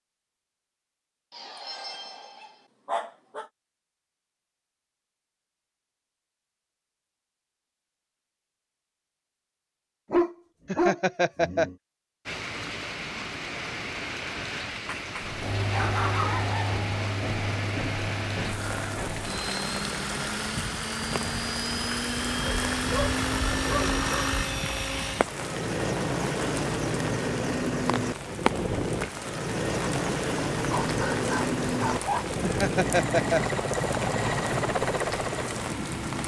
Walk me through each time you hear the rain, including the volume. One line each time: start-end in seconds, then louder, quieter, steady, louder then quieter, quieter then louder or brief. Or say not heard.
12.2-36.2 steady.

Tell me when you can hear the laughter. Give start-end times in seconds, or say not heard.
10.7-11.7, 32.4-33.6.